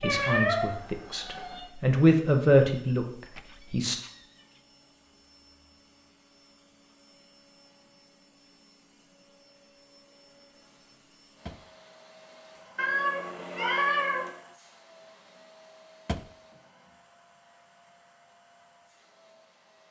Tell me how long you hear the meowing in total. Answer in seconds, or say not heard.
3 s.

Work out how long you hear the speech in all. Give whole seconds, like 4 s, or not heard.
4 s.